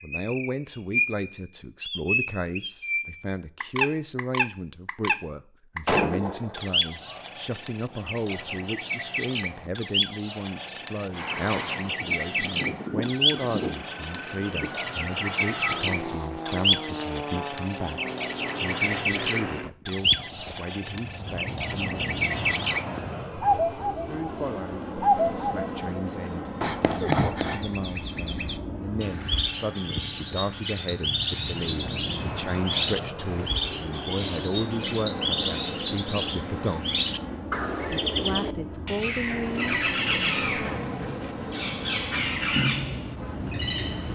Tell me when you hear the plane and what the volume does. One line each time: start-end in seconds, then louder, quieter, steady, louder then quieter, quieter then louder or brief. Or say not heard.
11.1-44.1 steady.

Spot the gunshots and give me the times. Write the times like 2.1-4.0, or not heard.
5.8-7.2.